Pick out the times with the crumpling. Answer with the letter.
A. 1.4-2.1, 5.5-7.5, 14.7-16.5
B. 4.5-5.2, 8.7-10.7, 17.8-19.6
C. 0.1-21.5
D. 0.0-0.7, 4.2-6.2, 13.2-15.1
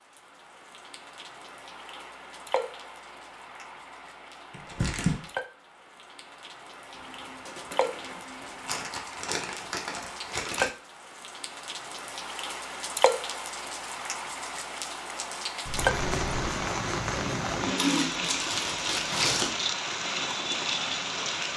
B.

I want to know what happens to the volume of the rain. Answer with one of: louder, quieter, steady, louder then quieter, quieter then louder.
louder.